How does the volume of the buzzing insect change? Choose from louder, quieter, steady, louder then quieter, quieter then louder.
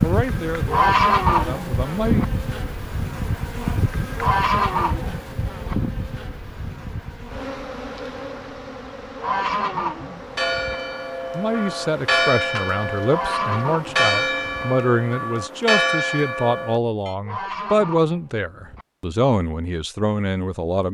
quieter.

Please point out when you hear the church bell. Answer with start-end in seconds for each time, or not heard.
10.2-17.1.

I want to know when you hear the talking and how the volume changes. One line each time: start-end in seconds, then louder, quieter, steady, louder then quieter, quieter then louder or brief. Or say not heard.
0.0-2.2 brief
11.3-20.8 steady.